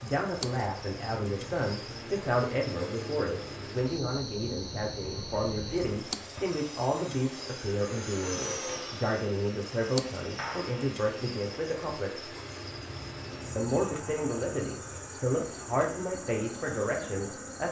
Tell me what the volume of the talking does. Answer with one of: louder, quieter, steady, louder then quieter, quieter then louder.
steady.